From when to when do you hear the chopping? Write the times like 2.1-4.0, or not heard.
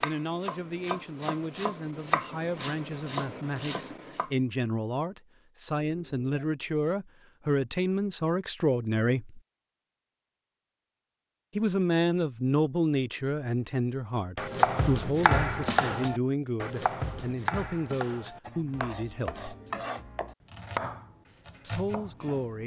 0.0-4.3, 14.3-22.6.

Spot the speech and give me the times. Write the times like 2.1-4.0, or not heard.
0.0-9.4, 11.6-19.4, 21.6-22.6.